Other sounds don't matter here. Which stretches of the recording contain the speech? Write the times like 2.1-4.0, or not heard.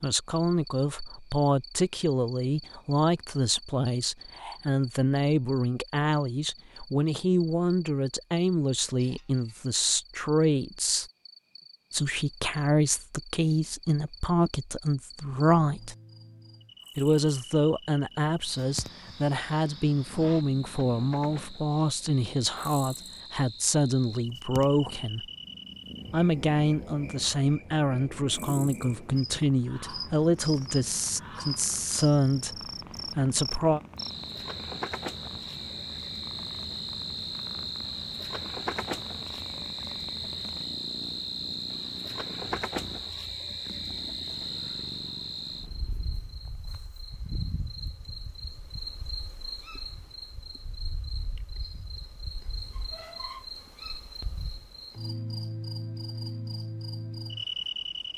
0.0-11.1, 11.9-15.9, 16.9-25.2, 26.1-33.8.